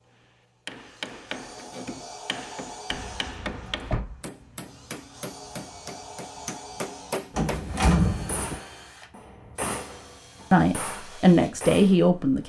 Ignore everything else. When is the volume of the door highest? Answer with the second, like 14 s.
8 s.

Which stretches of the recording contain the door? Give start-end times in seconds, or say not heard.
2.9-4.2, 7.3-8.6.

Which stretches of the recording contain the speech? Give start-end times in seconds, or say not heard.
10.5-12.4.